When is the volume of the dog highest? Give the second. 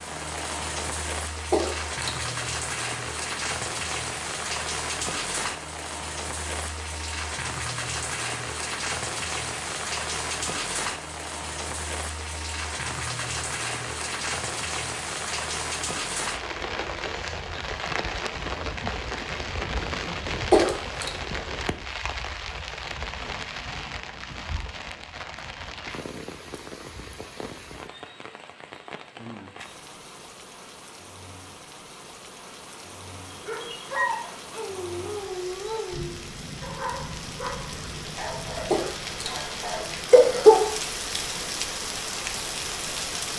34 s.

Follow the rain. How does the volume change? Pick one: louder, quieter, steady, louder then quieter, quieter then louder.
quieter then louder.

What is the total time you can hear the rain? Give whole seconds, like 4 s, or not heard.
43 s.